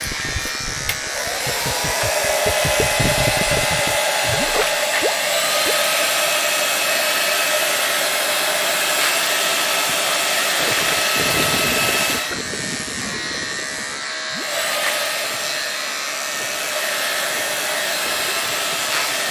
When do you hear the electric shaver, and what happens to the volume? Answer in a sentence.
You can hear the electric shaver from 0.0 to 19.2 s, at a steady volume.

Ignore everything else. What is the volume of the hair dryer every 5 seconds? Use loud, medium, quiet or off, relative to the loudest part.
loud, loud, loud, medium.